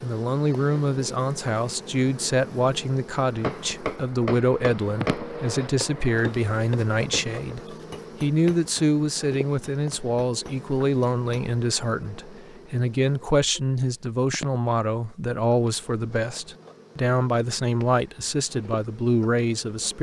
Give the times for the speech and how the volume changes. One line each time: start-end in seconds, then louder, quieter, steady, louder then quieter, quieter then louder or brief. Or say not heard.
0.0-19.9 steady.